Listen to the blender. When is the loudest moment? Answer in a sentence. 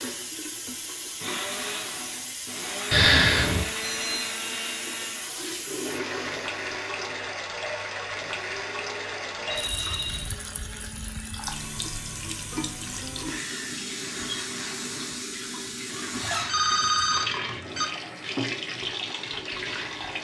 The loudest moment of the blender is at 4 seconds.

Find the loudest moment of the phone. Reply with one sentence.
The volume of the phone peaks at 3 seconds.